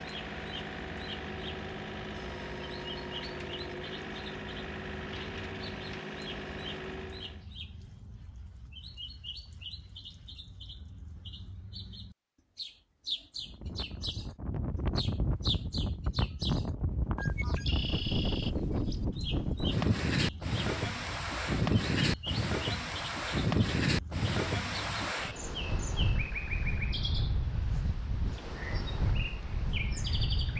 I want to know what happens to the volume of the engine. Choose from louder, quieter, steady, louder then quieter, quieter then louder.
steady.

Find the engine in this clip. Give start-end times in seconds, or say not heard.
0.0-7.5.